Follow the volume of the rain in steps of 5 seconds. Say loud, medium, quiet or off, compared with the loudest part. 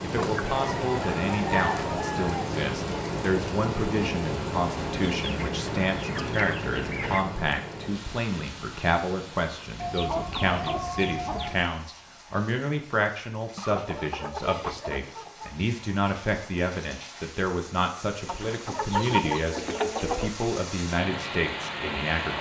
loud, medium, quiet, quiet, loud.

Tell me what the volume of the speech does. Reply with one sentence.
The loudness of the speech stays about the same.